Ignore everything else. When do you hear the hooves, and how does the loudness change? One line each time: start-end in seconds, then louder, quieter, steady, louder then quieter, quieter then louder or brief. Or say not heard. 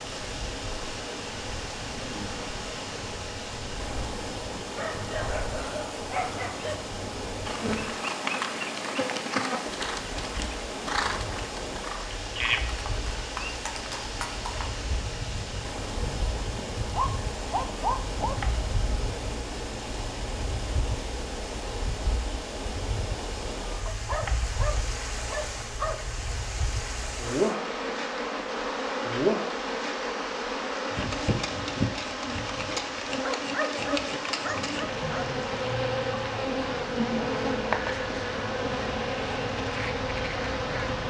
7.5-19.4 quieter.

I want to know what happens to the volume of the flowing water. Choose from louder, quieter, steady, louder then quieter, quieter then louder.
steady.